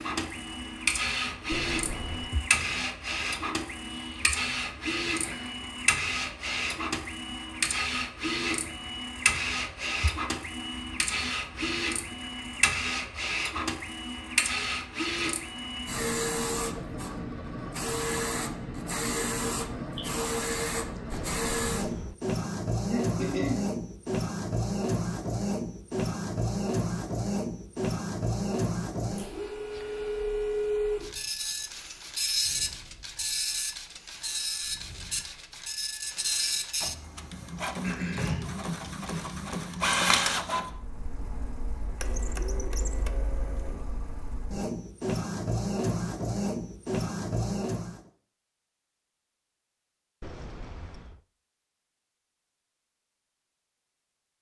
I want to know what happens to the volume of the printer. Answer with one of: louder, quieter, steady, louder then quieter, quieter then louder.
steady.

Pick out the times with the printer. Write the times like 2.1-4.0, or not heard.
0.0-48.0.